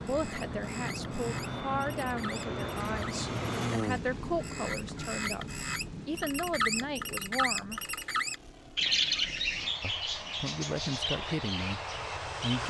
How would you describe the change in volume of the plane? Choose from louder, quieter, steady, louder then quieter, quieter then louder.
quieter then louder.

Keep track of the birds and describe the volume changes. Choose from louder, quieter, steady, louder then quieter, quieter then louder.
louder then quieter.